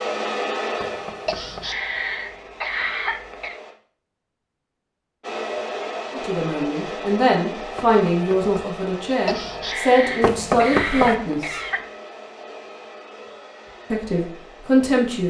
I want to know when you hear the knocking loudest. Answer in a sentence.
The volume of the knocking peaks at 11 seconds.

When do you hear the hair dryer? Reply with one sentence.
You can hear the hair dryer from 0.0 to 3.8 s and from 5.2 to 15.2 s.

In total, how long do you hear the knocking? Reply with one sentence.
You can hear the knocking for 3 seconds altogether.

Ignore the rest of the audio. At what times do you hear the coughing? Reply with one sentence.
You can hear the coughing from 1.2 to 3.5 s and from 9.2 to 11.8 s.